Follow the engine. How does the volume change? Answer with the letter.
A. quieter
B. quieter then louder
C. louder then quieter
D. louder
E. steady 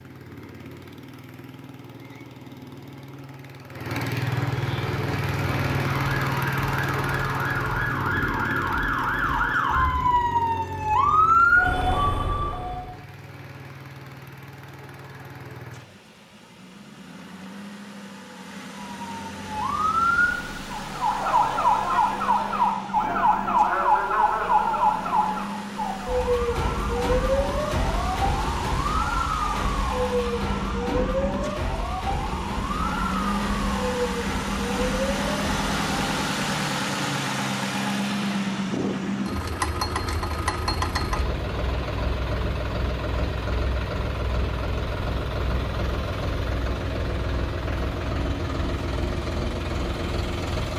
B.